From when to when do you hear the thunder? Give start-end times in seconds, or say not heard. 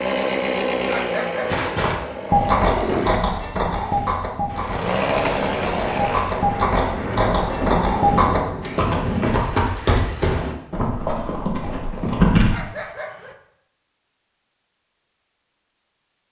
4.5-9.3.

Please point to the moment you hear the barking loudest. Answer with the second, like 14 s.
1 s.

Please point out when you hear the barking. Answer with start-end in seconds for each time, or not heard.
0.8-1.6, 12.5-13.3.